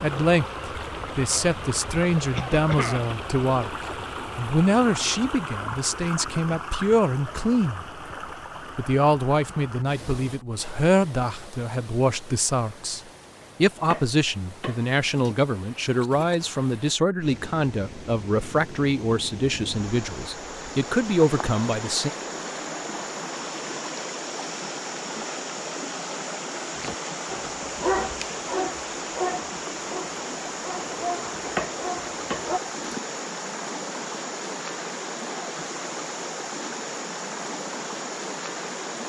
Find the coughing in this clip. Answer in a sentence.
The coughing can be heard from 2.3 to 3.1 s.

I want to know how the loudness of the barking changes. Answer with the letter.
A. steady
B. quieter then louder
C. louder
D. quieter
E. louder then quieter
D.